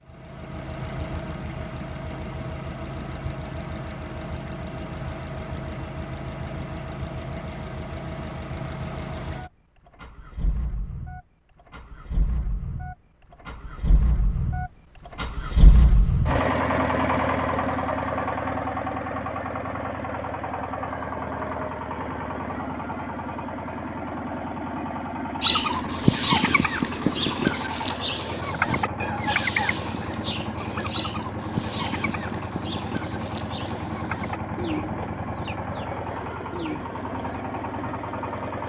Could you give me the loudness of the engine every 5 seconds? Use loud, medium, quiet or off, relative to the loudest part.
medium, medium, medium, loud, medium, medium, medium, medium.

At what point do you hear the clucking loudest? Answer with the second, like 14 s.
26 s.